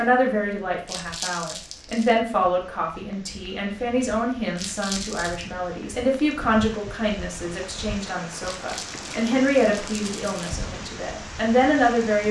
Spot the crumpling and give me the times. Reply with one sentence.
You can hear the crumpling from 0.8 to 2.1 s, from 4.5 to 5.5 s and from 8.4 to 10.5 s.